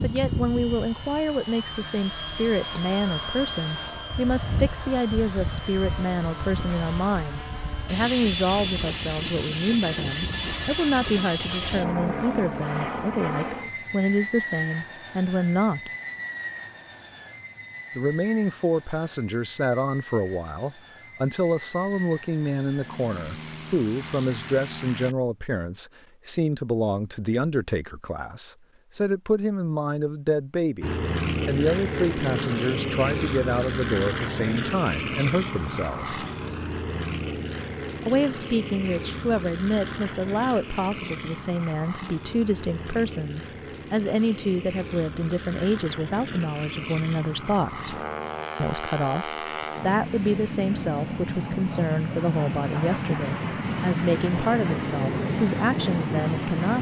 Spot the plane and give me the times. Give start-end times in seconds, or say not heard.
0.0-25.1, 30.8-56.7.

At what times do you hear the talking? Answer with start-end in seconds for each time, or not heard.
0.0-15.9, 17.9-36.2, 38.0-48.0, 48.6-56.7.